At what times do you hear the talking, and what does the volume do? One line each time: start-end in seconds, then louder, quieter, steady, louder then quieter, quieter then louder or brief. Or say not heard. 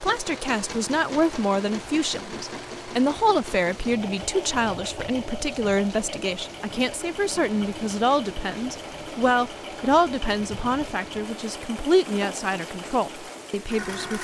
0.0-14.2 steady.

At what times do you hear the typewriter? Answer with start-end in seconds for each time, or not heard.
not heard.